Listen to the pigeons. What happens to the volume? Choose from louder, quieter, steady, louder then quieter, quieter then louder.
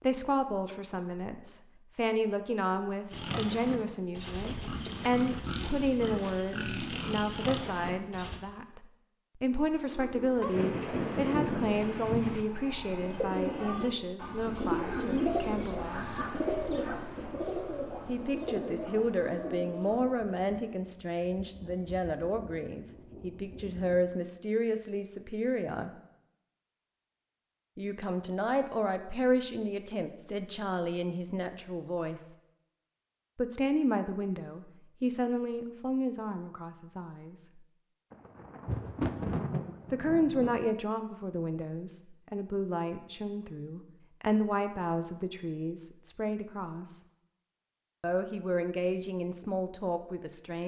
louder then quieter.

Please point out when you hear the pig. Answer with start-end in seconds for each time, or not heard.
3.1-8.4.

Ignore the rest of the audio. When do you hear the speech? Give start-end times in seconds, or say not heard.
0.0-16.1, 18.1-25.9, 27.8-32.3, 33.4-37.5, 39.9-47.0, 48.0-50.6.